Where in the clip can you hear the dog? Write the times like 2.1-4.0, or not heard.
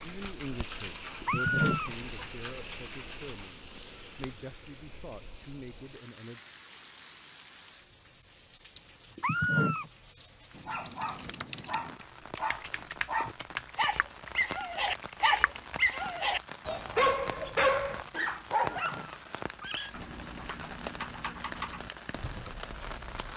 10.7-19.1.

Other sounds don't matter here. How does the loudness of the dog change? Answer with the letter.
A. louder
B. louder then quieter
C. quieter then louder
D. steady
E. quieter
A.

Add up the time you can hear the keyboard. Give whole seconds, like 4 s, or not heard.
12 s.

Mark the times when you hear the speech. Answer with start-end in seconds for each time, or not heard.
0.0-6.4.